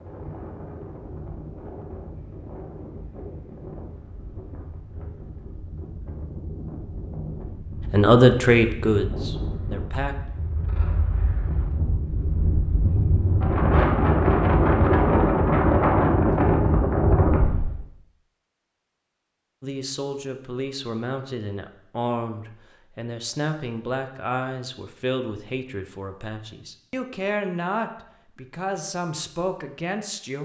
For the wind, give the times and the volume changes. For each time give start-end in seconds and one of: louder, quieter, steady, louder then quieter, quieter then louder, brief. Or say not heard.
0.0-17.8 louder.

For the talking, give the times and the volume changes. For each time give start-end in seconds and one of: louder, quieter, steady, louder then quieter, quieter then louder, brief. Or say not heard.
7.9-10.2 brief
19.6-30.3 steady.